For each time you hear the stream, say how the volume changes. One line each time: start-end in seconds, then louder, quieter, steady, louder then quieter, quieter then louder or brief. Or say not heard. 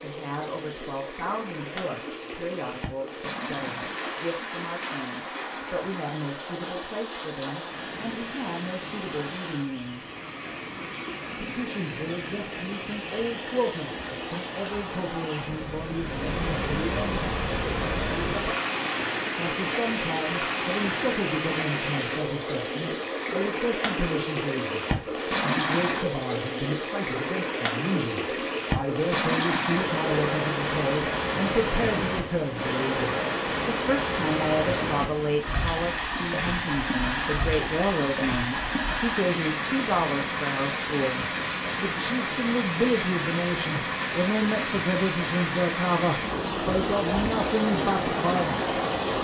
0.0-49.1 louder.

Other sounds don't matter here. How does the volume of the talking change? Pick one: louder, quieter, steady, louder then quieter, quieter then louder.
louder.